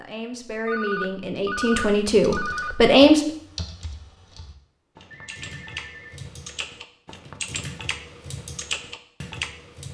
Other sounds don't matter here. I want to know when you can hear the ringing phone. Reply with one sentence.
The ringing phone can be heard from 0.7 to 2.8 s and from 5.1 to 6.2 s.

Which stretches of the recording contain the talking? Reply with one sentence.
The talking can be heard from 0.0 to 3.2 s.